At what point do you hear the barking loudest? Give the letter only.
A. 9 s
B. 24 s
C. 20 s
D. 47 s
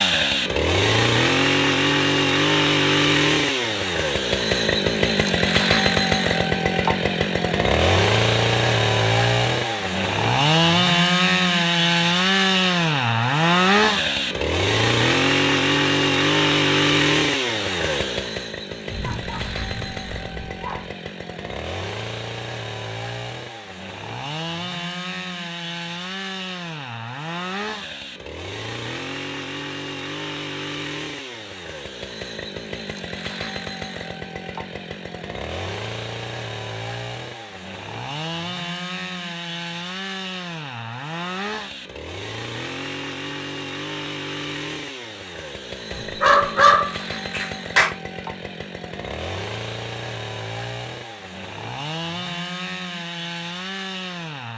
D.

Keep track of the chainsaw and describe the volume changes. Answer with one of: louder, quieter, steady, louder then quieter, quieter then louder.
quieter.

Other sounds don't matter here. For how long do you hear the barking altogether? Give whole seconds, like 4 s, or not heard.
4 s.